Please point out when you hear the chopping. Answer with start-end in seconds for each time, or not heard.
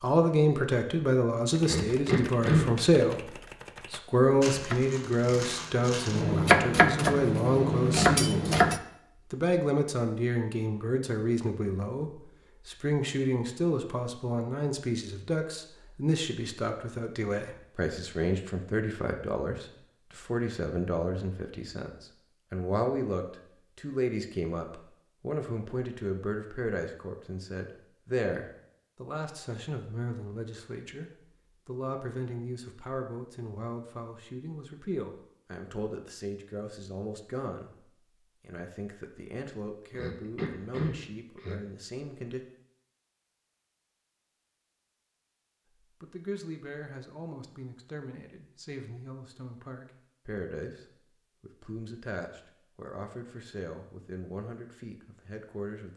1.5-8.8.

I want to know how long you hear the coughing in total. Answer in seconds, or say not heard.
3 s.